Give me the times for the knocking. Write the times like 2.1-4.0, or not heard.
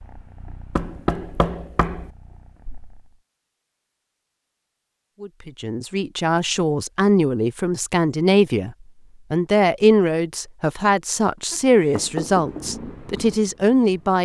0.8-2.1, 11.5-12.8.